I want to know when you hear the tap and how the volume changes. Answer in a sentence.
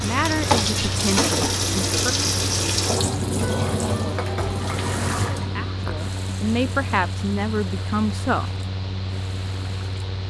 The tap can be heard from 0.0 to 9.9 s, getting quieter.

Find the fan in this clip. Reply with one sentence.
The fan can be heard from 0.0 to 10.2 s.